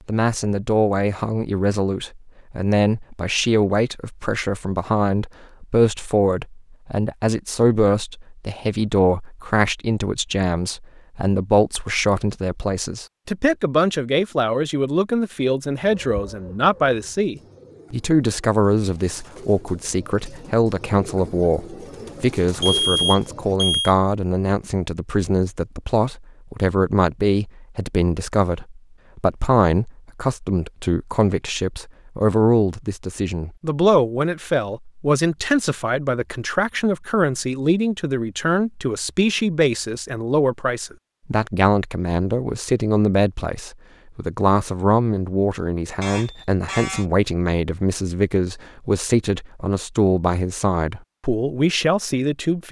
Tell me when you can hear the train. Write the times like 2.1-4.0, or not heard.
not heard.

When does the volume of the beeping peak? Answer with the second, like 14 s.
23 s.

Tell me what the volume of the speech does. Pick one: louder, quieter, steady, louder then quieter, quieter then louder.
steady.